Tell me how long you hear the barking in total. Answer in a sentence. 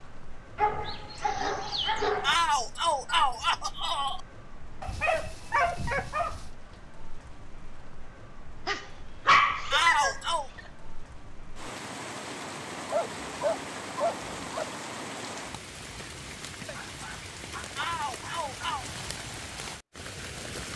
You can hear the barking for 9 seconds altogether.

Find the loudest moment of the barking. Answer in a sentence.
The loudest moment of the barking is at 9 seconds.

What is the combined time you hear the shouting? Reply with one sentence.
You can hear the shouting for 4 seconds altogether.